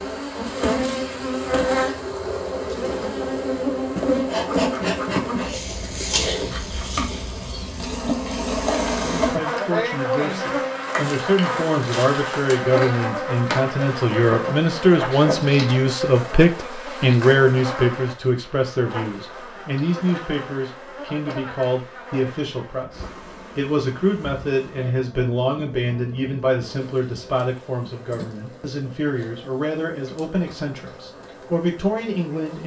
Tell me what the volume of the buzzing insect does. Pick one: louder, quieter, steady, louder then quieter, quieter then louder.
quieter.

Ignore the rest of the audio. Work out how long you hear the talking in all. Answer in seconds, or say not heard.
24 s.